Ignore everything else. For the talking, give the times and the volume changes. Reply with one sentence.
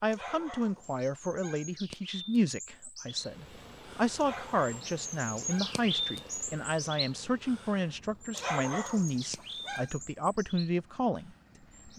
You can hear the talking from 0.0 to 11.9 s, at a steady volume.